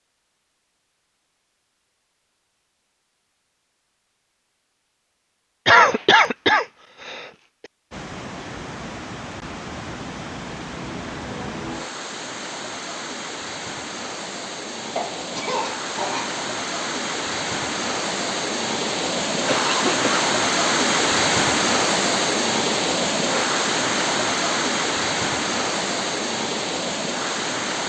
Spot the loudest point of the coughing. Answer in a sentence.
The volume of the coughing peaks at 6 seconds.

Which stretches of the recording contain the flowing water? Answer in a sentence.
You can hear the flowing water from 7.9 to 27.8 s.